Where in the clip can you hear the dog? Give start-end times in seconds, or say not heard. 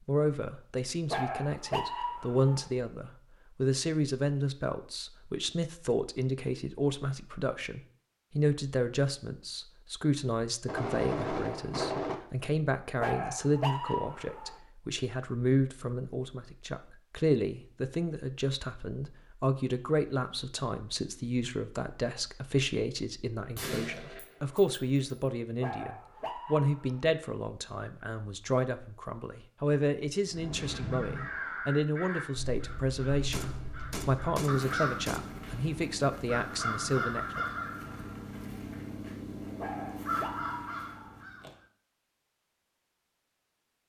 1.1-2.7, 13.0-14.6, 25.6-27.1, 39.5-41.2.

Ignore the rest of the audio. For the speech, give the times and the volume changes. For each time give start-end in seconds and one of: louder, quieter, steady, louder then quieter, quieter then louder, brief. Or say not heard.
0.0-37.5 steady.